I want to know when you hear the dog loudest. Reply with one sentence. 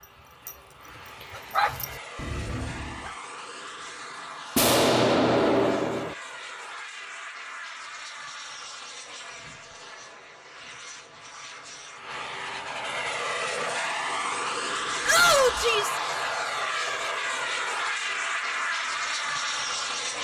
The volume of the dog peaks at 2 seconds.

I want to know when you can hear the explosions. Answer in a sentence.
The explosions can be heard from 4.5 to 6.2 s.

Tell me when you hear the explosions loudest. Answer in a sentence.
The loudest moment of the explosions is at 5 seconds.